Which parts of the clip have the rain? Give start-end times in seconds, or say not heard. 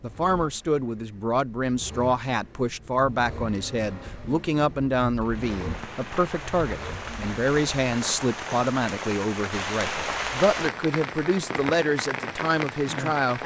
5.2-13.4.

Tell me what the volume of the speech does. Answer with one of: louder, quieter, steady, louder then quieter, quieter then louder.
steady.